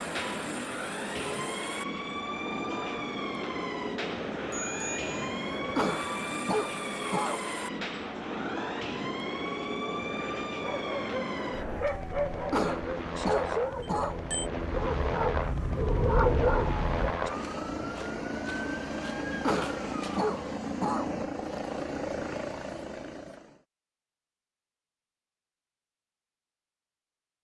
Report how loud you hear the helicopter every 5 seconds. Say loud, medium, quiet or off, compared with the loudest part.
loud, loud, loud, loud, loud, off.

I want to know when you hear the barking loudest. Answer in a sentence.
The loudest moment of the barking is at 16 seconds.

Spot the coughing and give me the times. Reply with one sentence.
You can hear the coughing from 5.8 to 7.4 s, from 12.5 to 14.2 s and from 19.4 to 21.1 s.